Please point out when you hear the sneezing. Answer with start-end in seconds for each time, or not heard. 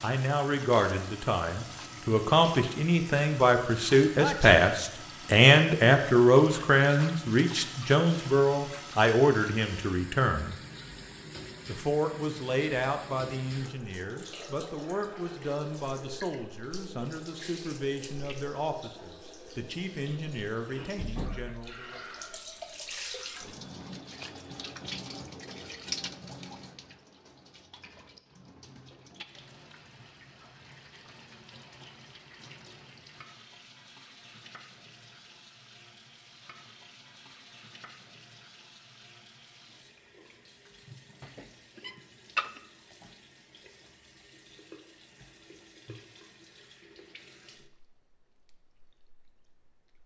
4.2-4.7, 41.2-42.5.